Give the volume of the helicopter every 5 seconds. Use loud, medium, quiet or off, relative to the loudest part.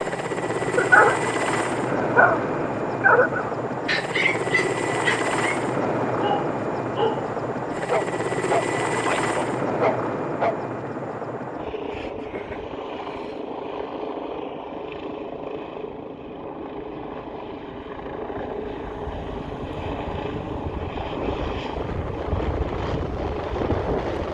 loud, loud, medium, medium, loud.